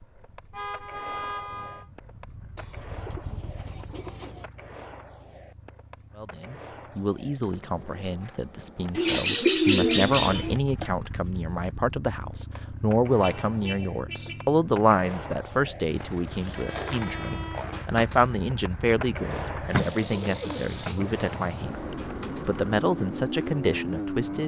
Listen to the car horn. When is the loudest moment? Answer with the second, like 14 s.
1 s.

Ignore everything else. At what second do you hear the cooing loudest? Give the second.
10 s.